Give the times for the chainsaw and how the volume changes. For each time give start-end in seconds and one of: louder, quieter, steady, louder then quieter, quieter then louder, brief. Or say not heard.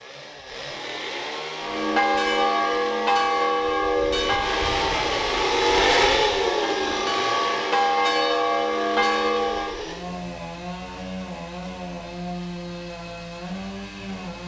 0.0-14.4 louder then quieter.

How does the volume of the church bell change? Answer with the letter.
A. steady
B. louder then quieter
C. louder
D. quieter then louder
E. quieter
D.